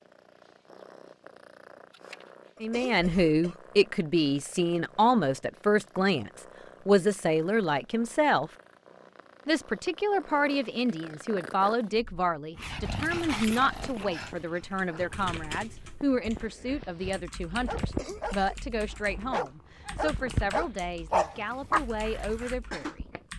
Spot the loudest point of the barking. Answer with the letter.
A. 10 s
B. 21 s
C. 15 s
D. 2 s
B.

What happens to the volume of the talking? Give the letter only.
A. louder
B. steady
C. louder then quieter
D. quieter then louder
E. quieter
E.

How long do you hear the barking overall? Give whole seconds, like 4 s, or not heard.
8 s.